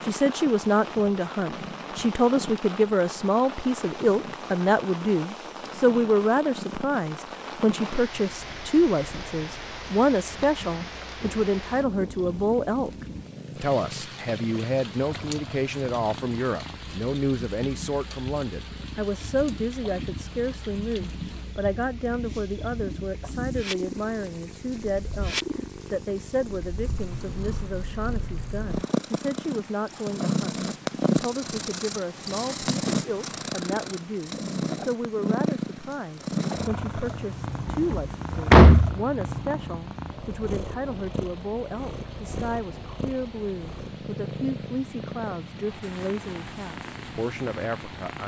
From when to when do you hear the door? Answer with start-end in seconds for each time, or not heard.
37.6-39.0.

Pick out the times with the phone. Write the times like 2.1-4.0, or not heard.
not heard.